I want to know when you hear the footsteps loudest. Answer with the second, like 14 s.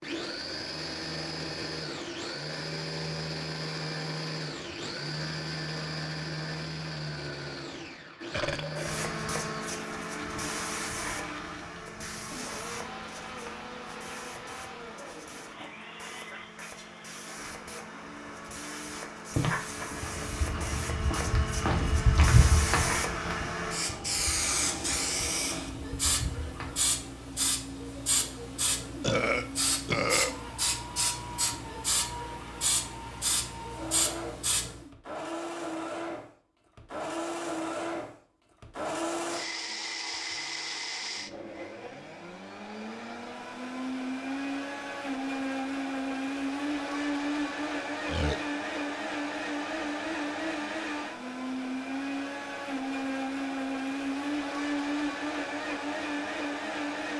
22 s.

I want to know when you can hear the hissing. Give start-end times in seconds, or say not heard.
8.8-34.9.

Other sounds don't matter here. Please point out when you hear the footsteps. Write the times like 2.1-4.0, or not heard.
19.3-26.9.